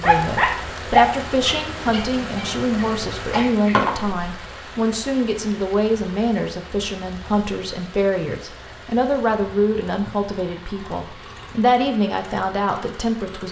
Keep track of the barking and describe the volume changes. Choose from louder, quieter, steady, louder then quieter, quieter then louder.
quieter then louder.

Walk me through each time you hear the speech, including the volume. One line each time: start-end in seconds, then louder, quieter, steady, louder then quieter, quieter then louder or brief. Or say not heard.
0.0-13.4 steady.